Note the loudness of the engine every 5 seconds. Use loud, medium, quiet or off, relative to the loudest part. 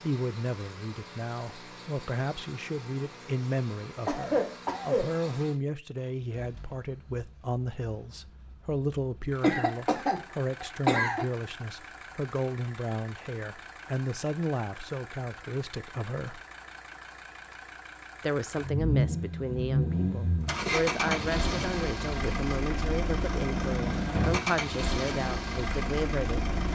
quiet, quiet, quiet, loud, loud, loud.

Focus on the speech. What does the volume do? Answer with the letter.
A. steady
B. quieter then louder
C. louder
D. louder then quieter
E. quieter
A.